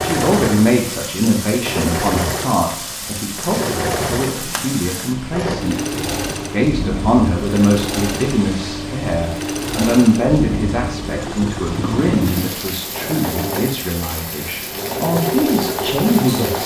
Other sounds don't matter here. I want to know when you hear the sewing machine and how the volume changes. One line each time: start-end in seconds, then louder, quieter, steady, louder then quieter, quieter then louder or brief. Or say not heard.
0.0-16.6 steady.